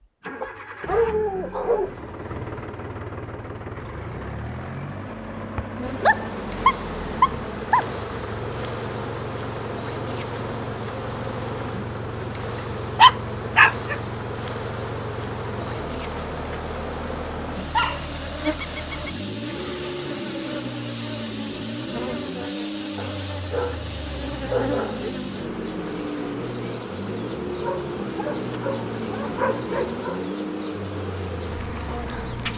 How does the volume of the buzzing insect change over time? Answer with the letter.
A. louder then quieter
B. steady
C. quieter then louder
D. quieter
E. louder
B.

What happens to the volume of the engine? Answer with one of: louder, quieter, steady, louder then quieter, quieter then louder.
steady.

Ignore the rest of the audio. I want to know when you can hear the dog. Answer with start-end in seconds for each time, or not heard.
0.4-1.9, 5.5-7.8, 12.9-13.9, 17.7-19.1, 22.9-25.1, 27.6-30.2.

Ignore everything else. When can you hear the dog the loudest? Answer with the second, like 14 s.
13 s.